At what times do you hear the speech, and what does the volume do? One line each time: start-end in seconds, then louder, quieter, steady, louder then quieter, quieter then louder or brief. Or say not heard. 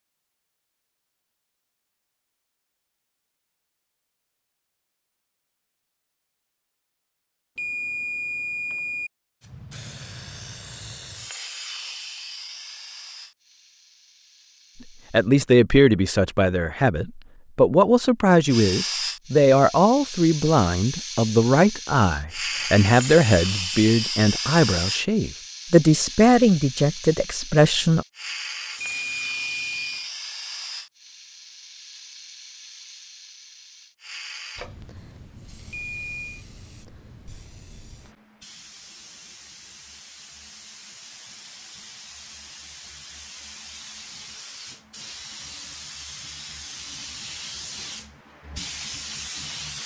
15.1-28.1 steady.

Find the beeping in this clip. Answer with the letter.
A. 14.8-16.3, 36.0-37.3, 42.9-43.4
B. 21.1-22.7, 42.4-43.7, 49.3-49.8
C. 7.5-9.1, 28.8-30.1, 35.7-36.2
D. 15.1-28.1
C.